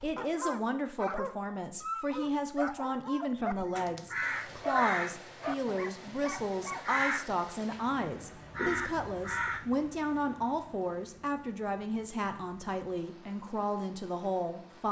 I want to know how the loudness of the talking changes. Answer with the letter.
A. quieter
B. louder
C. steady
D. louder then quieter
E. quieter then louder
C.